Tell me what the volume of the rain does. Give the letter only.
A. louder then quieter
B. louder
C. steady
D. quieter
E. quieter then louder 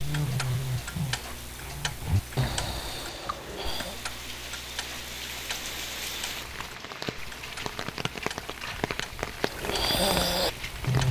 B.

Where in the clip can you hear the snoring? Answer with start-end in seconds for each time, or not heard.
0.0-4.0, 9.4-11.0.